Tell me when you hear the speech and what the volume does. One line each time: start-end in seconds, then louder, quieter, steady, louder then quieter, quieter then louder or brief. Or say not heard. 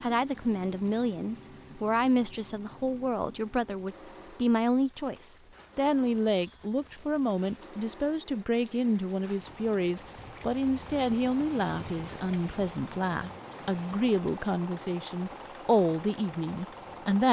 0.0-17.2 steady.